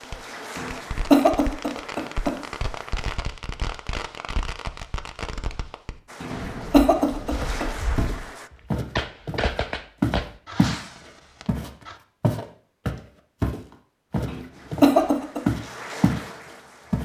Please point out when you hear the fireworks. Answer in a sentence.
You can hear the fireworks from 0.0 to 11.9 s.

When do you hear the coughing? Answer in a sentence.
The coughing can be heard from 0.6 to 2.4 s, from 6.2 to 7.7 s and from 14.2 to 15.4 s.